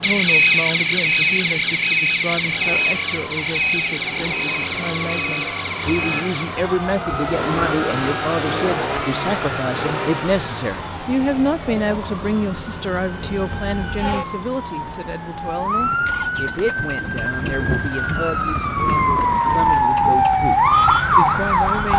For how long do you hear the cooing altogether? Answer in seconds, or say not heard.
not heard.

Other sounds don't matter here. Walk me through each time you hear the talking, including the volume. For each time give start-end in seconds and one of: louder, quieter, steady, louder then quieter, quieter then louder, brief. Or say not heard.
0.0-21.9 louder then quieter.